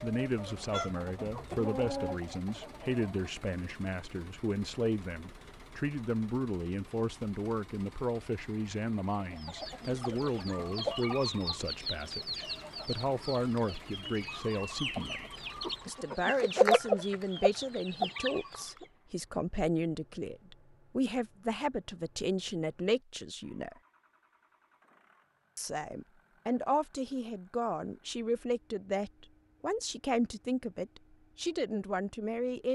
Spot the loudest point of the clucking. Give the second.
17 s.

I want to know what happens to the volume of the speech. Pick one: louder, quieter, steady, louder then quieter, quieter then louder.
steady.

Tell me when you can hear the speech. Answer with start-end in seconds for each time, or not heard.
0.0-15.2, 15.8-23.8, 25.6-32.7.